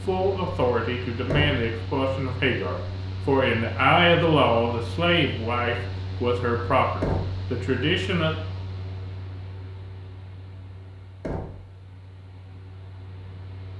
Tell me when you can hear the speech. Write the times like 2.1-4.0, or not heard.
0.1-8.3.